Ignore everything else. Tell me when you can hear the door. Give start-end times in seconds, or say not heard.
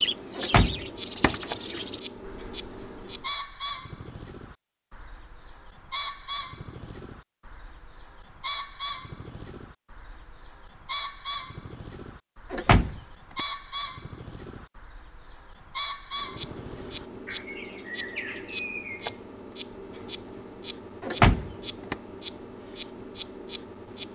0.3-1.4, 12.5-13.4, 21.0-21.9.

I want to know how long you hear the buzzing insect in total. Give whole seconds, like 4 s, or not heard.
11 s.